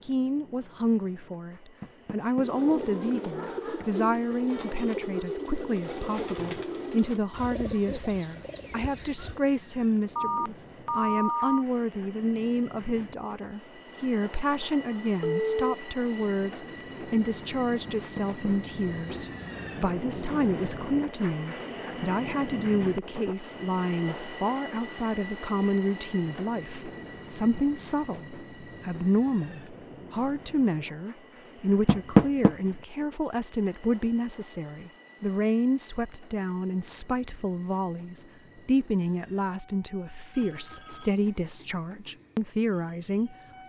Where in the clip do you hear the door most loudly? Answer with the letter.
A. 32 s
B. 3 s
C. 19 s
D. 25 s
A.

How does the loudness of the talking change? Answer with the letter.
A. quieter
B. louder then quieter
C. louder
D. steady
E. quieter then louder
D.